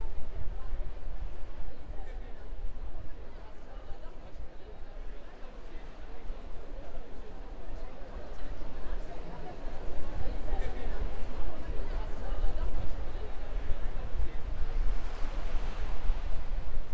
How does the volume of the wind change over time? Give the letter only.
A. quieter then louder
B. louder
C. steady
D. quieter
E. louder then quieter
B.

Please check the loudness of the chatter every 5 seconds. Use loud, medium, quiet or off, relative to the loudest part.
medium, loud, loud, medium.